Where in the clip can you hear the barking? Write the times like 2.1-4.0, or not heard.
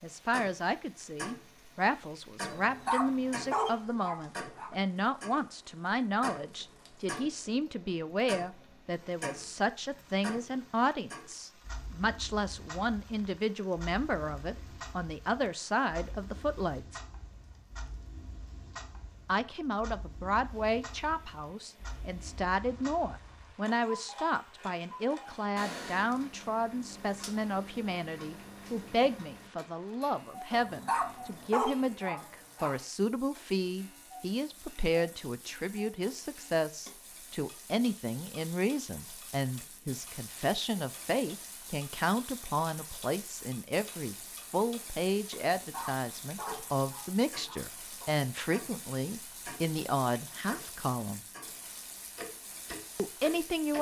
2.5-4.7, 30.5-32.8, 45.5-48.1.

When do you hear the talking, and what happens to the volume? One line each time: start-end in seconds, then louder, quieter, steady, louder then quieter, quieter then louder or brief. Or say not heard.
0.0-17.0 steady
19.2-51.2 steady
53.0-53.7 brief.